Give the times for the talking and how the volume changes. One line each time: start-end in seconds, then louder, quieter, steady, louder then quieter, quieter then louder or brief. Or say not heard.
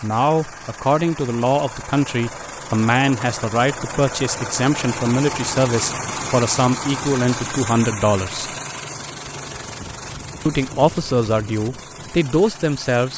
0.0-8.5 steady
10.4-13.1 brief.